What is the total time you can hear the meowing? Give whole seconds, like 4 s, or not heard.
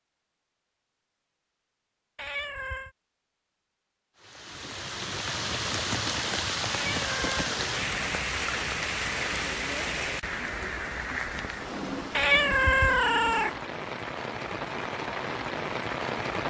3 s.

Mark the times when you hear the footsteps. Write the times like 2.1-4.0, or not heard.
not heard.